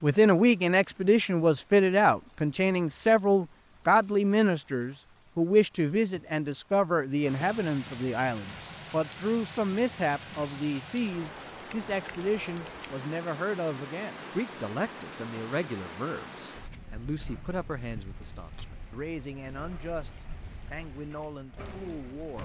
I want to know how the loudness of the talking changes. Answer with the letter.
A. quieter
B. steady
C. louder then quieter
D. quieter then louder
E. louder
A.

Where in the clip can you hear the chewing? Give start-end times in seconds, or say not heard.
not heard.